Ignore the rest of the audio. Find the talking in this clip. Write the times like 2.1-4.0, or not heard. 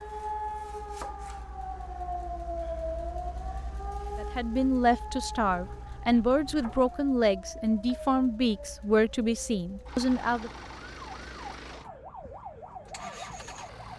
4.2-10.5.